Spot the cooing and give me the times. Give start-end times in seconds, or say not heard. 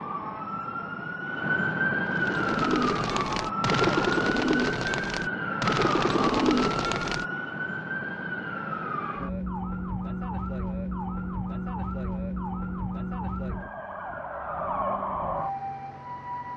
2.0-7.2.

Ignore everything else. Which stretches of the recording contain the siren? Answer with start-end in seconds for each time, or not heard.
0.0-16.5.